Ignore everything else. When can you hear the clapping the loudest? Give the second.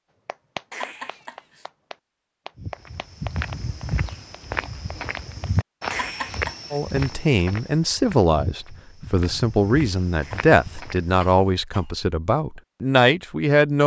1 s.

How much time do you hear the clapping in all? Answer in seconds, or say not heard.
5 s.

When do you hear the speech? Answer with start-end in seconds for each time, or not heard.
6.7-13.8.